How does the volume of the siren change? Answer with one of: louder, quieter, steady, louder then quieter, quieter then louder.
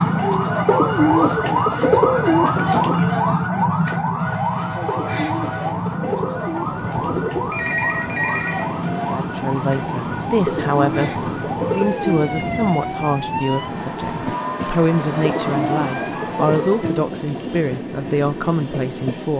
quieter.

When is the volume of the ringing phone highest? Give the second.
8 s.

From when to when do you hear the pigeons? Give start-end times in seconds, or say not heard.
0.7-3.0, 4.8-7.5, 10.4-12.2, 15.4-17.6.